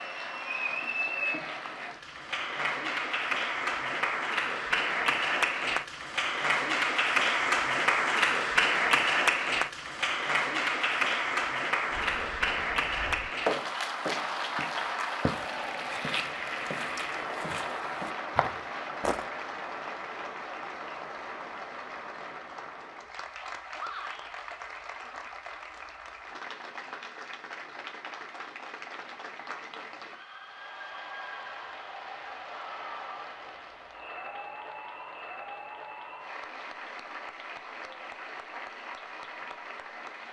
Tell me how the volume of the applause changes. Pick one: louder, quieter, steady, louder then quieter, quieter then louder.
quieter.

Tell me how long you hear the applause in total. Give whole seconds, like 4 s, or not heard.
40 s.